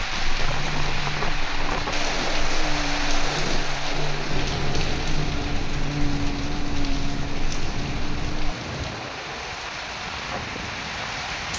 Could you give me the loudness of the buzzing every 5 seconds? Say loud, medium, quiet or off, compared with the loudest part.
loud, loud, off.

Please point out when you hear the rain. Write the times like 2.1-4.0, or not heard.
0.0-11.5.